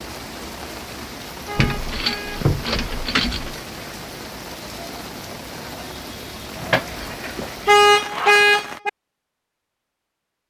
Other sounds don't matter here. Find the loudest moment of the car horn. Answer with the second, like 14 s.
8 s.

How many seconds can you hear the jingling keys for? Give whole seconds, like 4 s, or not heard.
4 s.